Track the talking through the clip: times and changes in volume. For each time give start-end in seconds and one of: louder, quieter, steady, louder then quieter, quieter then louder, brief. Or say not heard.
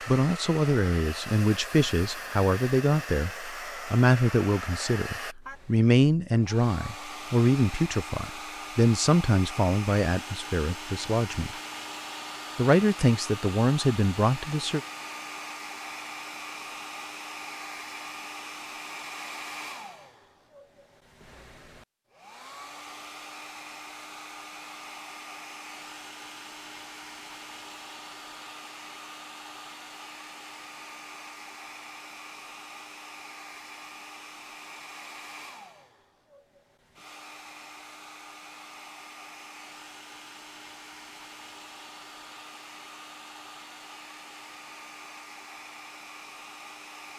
0.1-11.6 steady
12.6-14.8 brief.